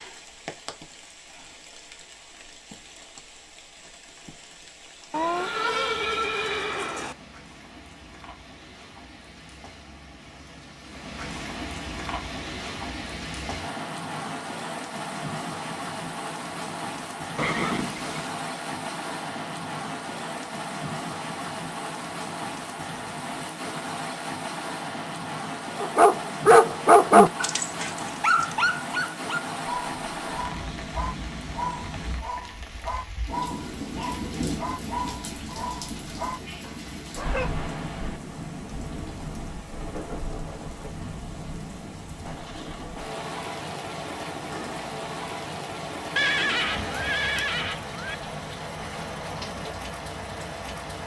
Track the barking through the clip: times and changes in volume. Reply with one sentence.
The barking can be heard from 25.8 to 37.6 s, getting quieter.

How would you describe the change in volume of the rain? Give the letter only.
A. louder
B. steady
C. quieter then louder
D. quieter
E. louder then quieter
A.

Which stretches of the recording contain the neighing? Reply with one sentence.
You can hear the neighing from 5.1 to 7.2 s, from 17.4 to 18.3 s and from 46.1 to 48.1 s.